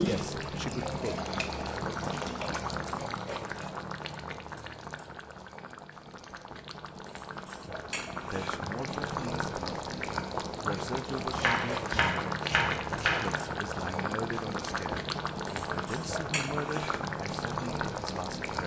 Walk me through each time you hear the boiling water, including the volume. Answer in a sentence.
The boiling water can be heard from 0.0 to 18.6 s, getting quieter then louder.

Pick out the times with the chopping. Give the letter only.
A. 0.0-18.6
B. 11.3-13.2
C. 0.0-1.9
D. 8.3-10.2
B.